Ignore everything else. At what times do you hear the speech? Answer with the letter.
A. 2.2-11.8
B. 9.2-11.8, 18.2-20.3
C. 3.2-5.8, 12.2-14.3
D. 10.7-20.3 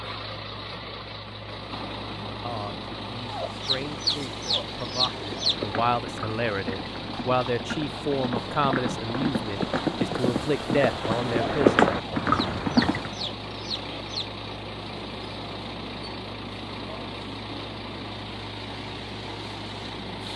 A.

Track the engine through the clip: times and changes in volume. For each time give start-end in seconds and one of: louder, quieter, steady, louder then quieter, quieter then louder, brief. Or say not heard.
0.0-20.3 steady.